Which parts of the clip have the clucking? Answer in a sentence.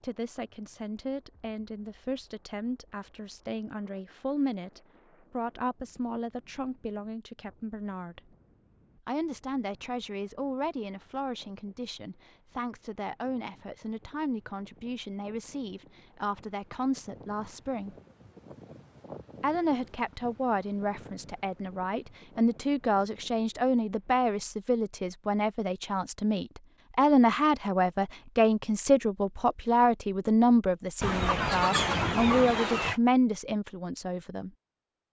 You can hear the clucking from 31.0 to 33.0 s.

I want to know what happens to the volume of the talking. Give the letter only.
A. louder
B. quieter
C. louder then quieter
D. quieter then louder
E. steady
A.